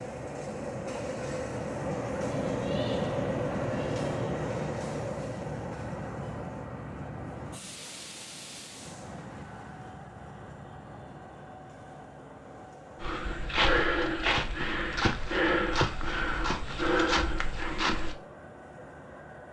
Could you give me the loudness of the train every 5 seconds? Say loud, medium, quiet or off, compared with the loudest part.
loud, medium, quiet, quiet.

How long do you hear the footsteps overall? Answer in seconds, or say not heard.
5 s.